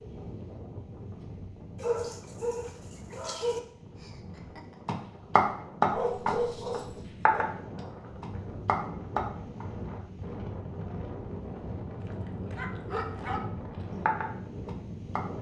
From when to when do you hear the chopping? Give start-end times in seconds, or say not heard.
4.8-9.7, 14.1-15.2.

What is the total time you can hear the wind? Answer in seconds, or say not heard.
15 s.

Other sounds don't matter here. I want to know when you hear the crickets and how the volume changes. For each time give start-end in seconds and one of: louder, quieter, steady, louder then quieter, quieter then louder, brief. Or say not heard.
not heard.